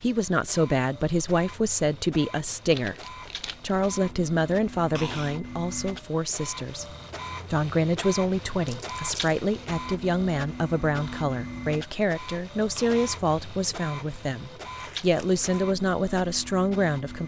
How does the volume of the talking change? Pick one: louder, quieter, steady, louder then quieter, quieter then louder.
steady.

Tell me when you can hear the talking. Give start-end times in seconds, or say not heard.
0.0-6.8, 7.5-17.2.